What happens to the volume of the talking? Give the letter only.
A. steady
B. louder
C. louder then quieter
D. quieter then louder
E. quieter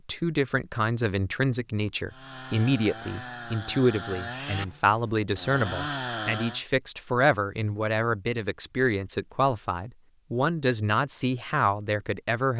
A.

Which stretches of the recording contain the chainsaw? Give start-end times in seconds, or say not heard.
2.0-6.7.